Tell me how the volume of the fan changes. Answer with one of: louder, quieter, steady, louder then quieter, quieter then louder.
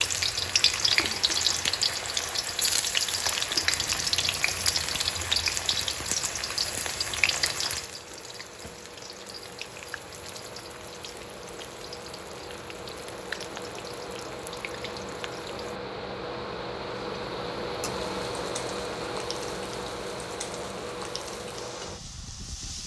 louder.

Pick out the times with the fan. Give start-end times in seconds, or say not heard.
0.0-22.8.